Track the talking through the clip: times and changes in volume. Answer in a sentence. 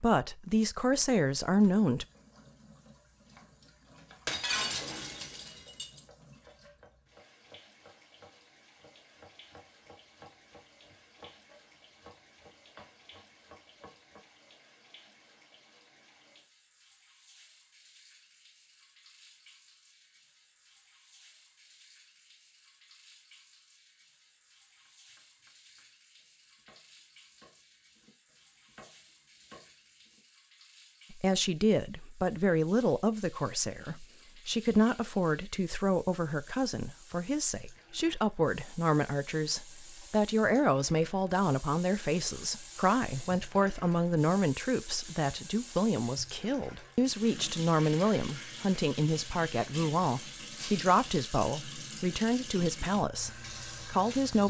The talking can be heard briefly from 0.0 to 2.0 s; and from 31.1 to 54.4 s, at a steady volume.